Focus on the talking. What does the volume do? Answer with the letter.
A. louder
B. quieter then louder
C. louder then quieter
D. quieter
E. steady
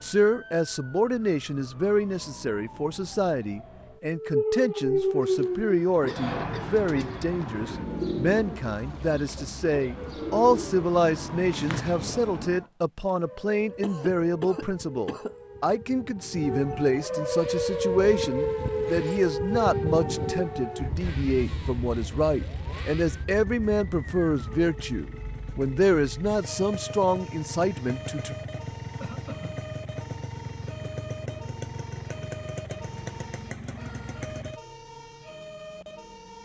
E.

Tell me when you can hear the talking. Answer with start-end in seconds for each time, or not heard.
0.0-28.4.